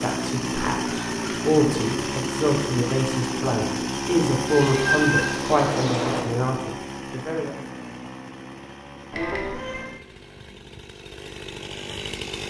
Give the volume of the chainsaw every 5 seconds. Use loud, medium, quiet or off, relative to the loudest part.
loud, medium, medium.